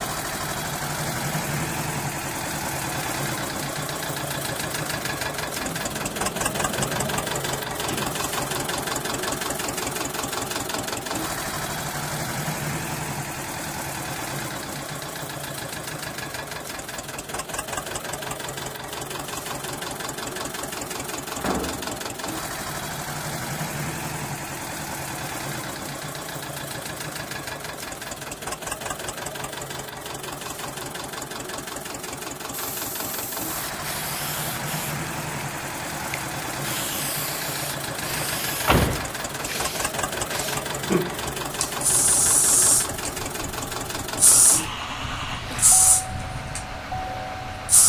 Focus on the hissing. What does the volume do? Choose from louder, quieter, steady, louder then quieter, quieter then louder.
louder.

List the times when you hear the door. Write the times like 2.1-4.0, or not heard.
5.6-8.2, 21.4-21.9, 38.1-39.1.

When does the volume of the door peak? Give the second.
39 s.